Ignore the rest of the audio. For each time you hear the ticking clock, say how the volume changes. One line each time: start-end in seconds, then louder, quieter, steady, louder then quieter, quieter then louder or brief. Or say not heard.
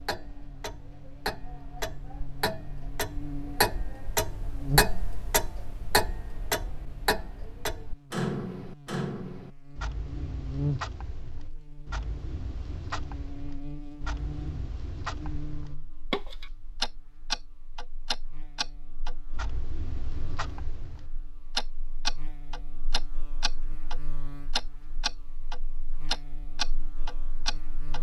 0.0-27.9 quieter then louder.